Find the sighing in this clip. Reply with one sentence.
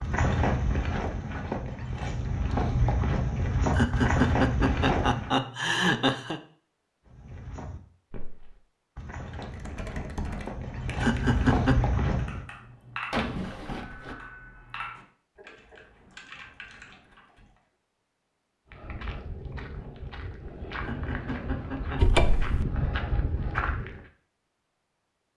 The sighing can't be heard in this clip.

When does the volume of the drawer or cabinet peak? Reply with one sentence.
The volume of the drawer or cabinet peaks at 22 seconds.